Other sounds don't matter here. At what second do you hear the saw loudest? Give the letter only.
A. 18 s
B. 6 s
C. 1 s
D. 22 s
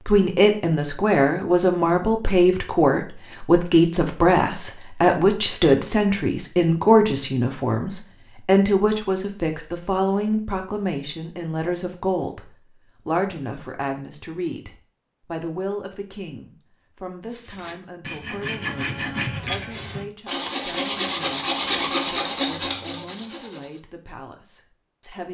D.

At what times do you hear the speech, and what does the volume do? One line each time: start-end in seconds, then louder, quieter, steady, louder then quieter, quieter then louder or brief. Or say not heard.
0.1-25.2 quieter.